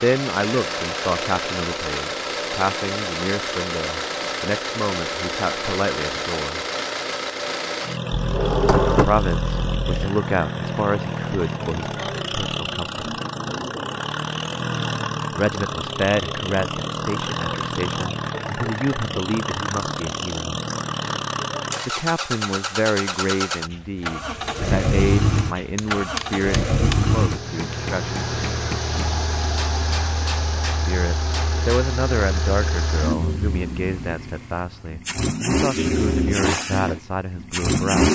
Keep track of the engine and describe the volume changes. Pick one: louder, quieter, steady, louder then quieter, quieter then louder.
steady.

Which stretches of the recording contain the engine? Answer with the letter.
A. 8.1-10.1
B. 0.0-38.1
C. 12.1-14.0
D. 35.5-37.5
B.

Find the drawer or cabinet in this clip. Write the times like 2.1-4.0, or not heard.
8.1-10.1.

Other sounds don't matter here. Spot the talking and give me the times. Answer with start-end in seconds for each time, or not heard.
0.0-6.7, 8.8-13.1, 15.3-20.6, 21.9-28.2, 30.9-38.1.